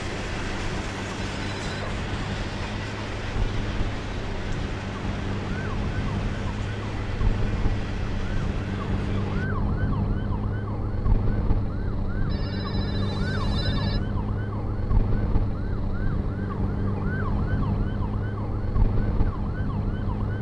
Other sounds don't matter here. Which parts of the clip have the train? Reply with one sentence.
The train can be heard from 0.0 to 9.4 s.